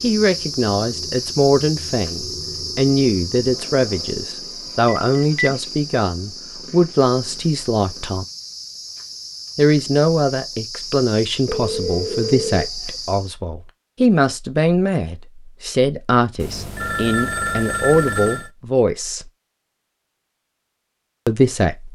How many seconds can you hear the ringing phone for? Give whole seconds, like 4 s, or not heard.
4 s.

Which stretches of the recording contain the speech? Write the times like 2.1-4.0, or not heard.
0.0-8.2, 9.6-19.3, 21.2-21.8.